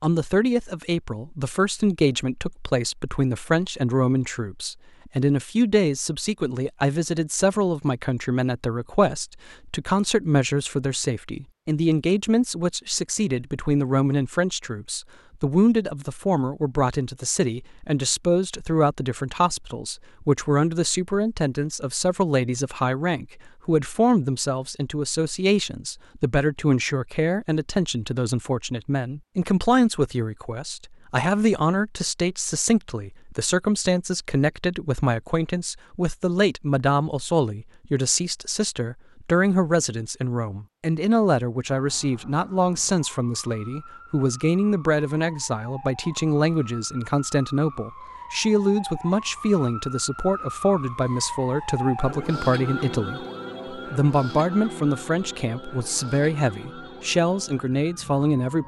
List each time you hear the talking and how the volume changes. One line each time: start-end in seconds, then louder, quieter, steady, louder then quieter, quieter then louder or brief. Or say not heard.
0.0-58.6 steady.